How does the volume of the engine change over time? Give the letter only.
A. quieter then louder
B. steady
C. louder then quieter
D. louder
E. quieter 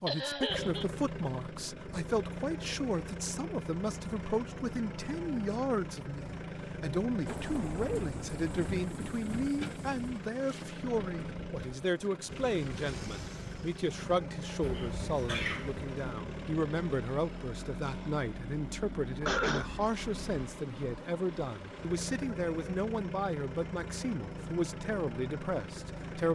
B.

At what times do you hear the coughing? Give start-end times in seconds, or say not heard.
0.1-0.8, 14.6-15.8, 19.2-19.7.